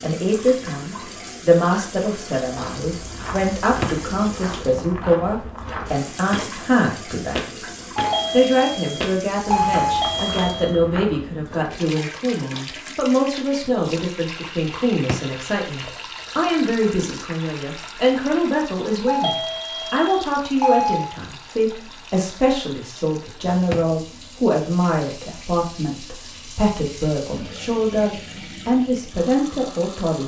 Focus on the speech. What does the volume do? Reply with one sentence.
The volume of the speech stays about the same.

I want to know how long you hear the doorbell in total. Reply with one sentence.
The doorbell can be heard for 5 seconds in total.